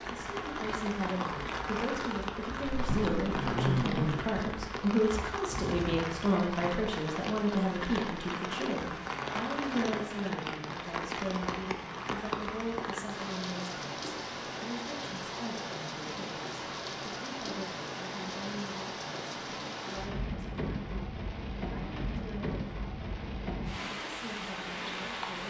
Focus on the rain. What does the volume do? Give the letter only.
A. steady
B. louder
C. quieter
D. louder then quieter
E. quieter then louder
A.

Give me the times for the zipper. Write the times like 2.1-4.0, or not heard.
2.7-4.2.